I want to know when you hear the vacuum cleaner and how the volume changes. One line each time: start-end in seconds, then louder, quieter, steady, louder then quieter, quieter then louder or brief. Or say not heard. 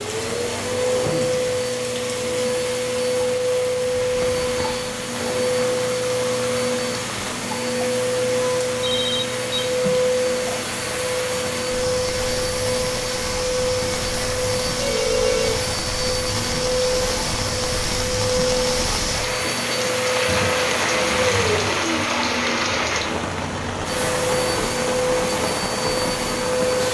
0.0-26.8 steady.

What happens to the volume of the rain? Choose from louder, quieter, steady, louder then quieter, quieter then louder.
louder.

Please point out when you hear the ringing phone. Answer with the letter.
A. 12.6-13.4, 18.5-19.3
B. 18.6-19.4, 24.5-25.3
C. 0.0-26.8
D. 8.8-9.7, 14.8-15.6
D.